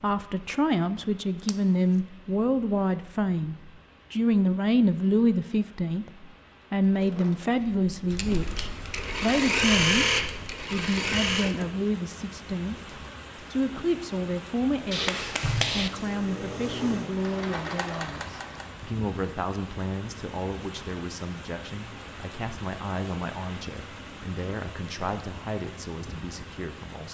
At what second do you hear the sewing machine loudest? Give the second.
10 s.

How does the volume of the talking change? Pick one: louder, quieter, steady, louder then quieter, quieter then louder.
quieter.